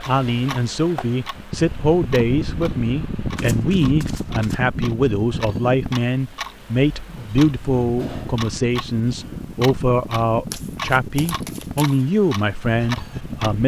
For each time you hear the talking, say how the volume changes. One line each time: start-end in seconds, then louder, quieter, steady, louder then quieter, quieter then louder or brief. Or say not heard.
0.0-13.6 steady.